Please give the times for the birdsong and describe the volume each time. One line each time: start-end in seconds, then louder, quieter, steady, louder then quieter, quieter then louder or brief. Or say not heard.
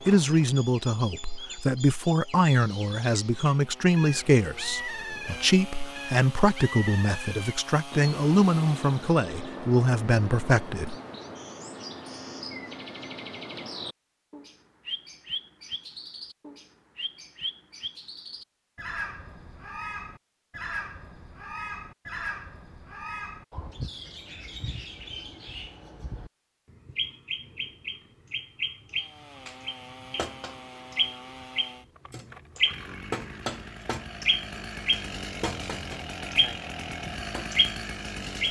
0.1-38.4 louder.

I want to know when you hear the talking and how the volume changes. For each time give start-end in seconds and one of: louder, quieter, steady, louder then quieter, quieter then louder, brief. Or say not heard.
0.1-10.9 steady.